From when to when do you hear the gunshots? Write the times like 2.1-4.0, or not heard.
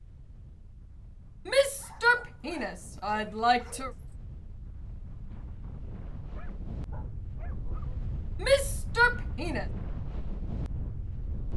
not heard.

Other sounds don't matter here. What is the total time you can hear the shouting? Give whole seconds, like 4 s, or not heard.
4 s.